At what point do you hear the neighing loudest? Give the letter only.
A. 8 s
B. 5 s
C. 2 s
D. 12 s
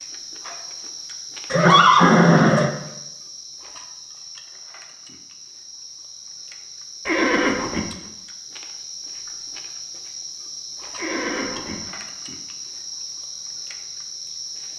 C.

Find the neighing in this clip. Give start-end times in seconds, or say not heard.
1.5-2.8, 7.0-7.8, 10.9-11.8.